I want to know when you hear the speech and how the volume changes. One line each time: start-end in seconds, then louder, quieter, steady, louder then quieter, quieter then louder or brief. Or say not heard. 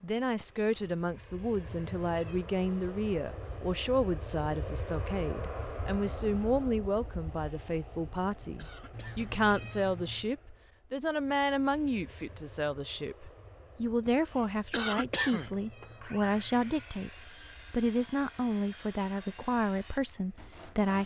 0.0-21.0 steady.